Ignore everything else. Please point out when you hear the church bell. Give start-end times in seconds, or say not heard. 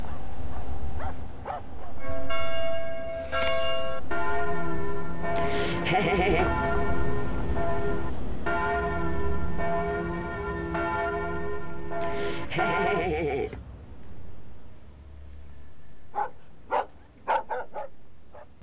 1.9-13.1.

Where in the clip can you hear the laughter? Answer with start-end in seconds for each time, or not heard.
5.3-6.5, 12.0-13.6.